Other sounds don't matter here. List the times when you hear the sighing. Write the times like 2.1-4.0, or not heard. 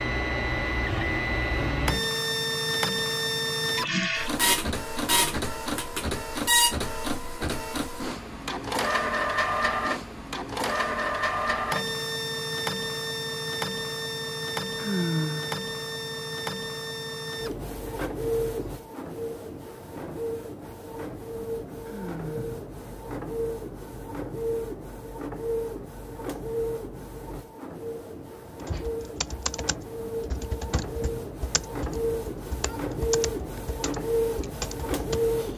14.8-15.6, 21.9-22.5.